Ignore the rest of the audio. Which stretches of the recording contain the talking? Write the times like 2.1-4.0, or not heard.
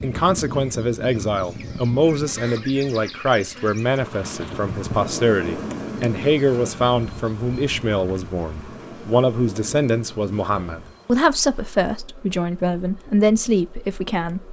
0.0-14.4.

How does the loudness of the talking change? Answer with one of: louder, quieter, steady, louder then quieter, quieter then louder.
steady.